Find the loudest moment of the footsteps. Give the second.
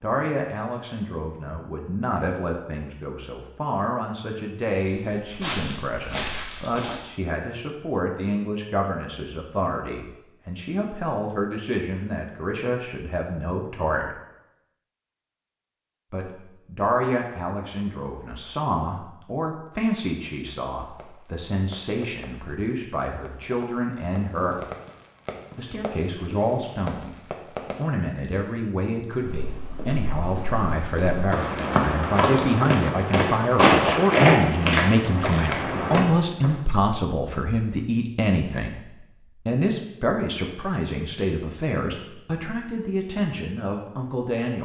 34 s.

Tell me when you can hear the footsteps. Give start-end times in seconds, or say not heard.
4.8-7.0, 29.1-36.5.